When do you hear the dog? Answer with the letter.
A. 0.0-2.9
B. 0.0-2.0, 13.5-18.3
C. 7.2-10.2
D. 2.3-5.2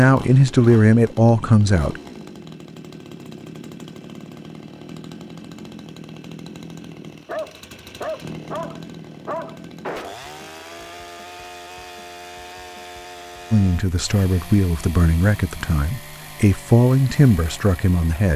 C.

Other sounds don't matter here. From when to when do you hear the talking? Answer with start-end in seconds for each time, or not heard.
0.0-2.0, 13.5-18.3.